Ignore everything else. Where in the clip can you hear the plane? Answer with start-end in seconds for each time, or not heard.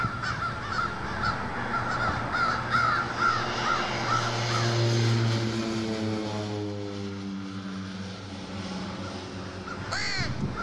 0.0-10.5.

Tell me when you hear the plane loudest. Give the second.
5 s.